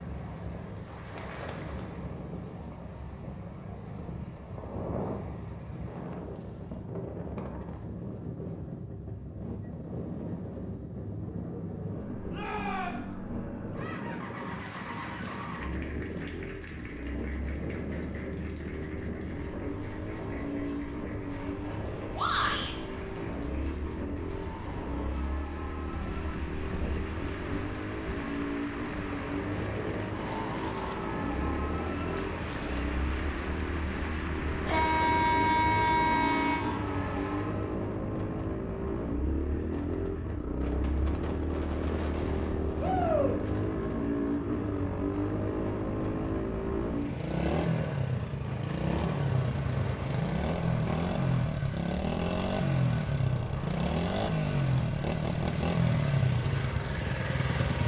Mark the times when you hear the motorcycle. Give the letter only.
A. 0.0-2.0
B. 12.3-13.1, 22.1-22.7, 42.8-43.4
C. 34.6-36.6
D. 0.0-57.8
D.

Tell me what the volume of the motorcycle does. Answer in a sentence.
The volume of the motorcycle goes up.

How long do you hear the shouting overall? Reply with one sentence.
The shouting can be heard for 2 seconds in total.